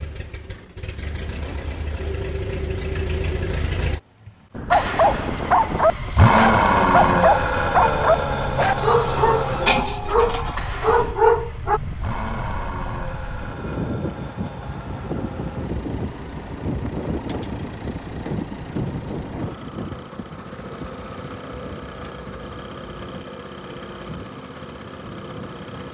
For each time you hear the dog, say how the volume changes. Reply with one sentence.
The dog can be heard from 4.7 to 11.8 s, at a steady volume.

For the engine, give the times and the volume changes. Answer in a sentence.
You can hear the engine from 0.0 to 25.8 s, getting louder then quieter.